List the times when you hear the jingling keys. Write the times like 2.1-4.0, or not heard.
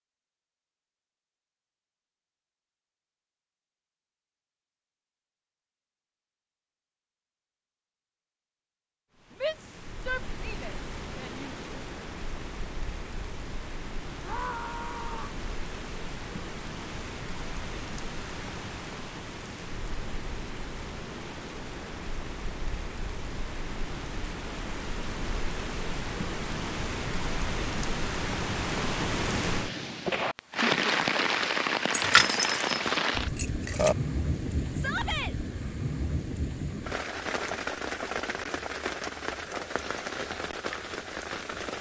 31.9-34.0.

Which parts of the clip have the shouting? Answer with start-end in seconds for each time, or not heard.
9.4-11.6, 14.2-15.4, 34.8-35.4.